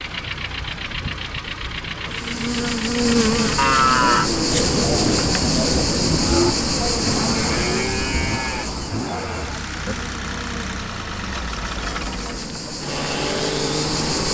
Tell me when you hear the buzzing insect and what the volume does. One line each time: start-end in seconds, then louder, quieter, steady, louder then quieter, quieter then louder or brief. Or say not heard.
2.1-14.2 quieter then louder.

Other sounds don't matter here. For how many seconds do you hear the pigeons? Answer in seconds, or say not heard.
not heard.